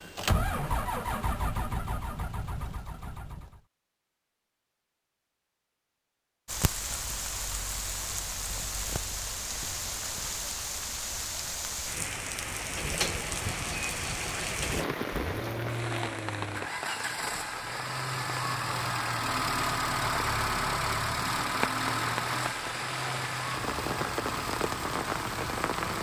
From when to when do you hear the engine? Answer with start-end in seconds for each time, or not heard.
0.0-3.6, 12.6-25.9.